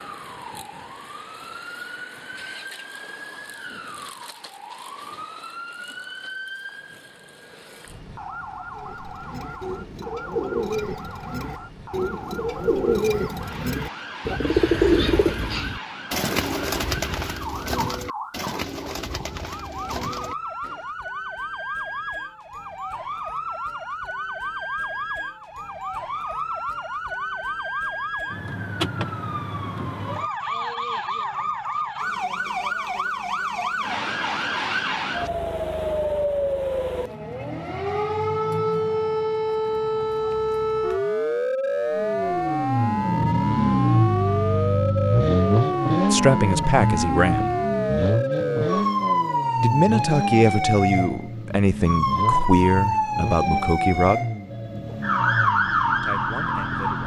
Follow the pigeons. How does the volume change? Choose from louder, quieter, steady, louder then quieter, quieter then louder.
louder then quieter.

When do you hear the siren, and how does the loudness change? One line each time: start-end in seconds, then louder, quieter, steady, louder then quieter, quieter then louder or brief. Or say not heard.
0.0-57.0 louder.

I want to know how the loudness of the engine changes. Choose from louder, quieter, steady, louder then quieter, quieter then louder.
quieter.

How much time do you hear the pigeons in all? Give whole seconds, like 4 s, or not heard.
12 s.